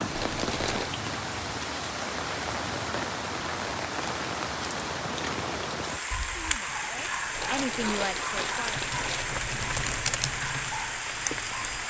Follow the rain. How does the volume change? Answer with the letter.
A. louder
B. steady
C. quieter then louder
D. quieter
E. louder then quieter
B.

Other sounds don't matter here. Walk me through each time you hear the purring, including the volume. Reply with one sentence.
The purring can't be heard in this clip.